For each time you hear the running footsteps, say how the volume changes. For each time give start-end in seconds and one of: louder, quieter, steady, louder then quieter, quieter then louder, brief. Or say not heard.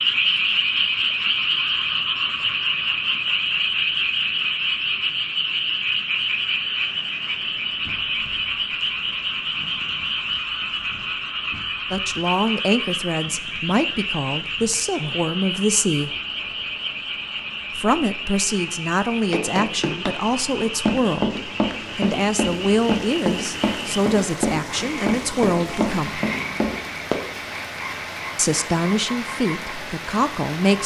19.3-27.2 steady.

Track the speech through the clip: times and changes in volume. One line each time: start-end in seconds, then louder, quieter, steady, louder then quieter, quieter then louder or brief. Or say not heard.
11.9-16.1 quieter then louder
17.8-26.2 steady
28.4-30.8 brief.